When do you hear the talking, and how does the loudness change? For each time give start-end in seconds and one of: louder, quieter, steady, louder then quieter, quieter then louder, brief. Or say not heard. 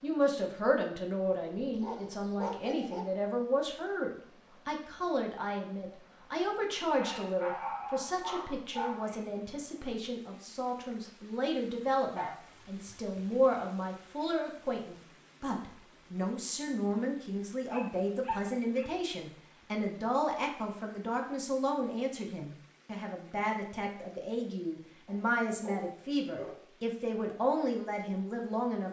0.0-28.8 steady.